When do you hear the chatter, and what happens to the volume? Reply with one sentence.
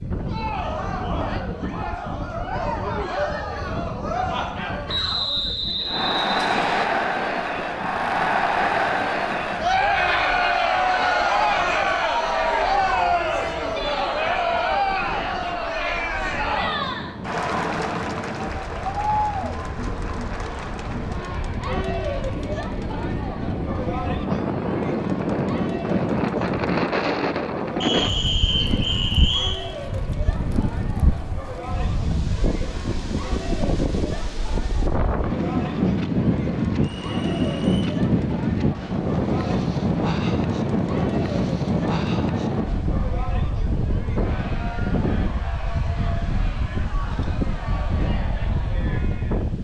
You can hear the chatter from 0.1 to 49.5 s, getting quieter.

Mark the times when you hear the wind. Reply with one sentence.
You can hear the wind from 0.0 to 49.5 s.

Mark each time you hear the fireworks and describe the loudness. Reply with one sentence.
The fireworks can't be heard in this clip.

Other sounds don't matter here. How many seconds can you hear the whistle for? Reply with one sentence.
The whistle can be heard for 5 seconds in total.